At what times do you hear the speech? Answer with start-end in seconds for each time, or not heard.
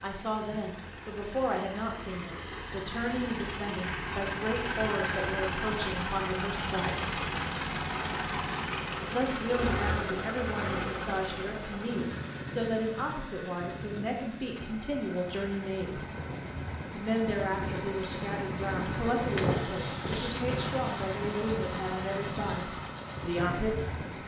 0.0-7.2, 9.1-16.0, 16.9-24.2.